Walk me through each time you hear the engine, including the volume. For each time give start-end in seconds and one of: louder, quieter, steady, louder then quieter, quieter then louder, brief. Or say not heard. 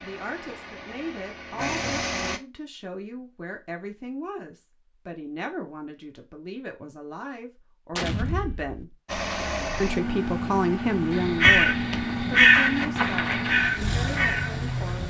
0.0-2.4 brief
9.1-15.0 steady.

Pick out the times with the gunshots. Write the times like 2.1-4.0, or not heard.
7.9-8.8.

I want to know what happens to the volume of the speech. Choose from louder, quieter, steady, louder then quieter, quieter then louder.
louder then quieter.